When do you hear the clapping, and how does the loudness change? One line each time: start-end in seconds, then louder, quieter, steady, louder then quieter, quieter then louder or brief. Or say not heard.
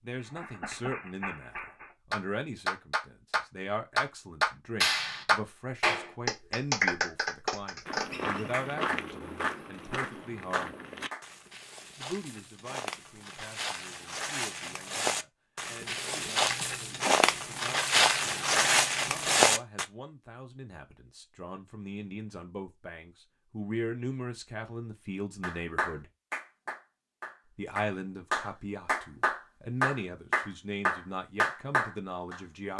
0.2-11.2 louder then quieter
25.4-32.7 louder.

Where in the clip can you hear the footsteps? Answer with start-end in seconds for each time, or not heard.
7.8-19.9.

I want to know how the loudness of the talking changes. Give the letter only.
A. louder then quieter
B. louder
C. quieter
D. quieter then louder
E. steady
D.